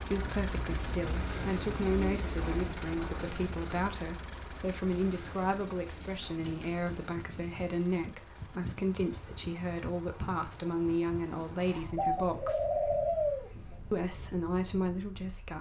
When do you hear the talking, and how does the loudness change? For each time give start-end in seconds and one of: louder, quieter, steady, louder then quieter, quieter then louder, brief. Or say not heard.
0.0-12.8 steady
13.9-15.5 brief.